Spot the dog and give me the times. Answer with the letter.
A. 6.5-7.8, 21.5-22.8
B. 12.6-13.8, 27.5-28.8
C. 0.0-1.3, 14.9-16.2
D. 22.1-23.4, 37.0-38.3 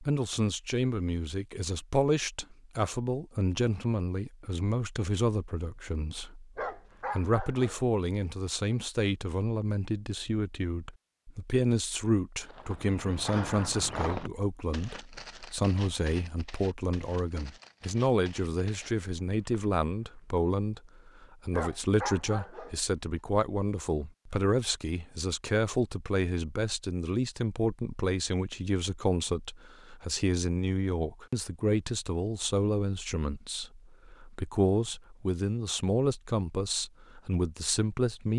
A.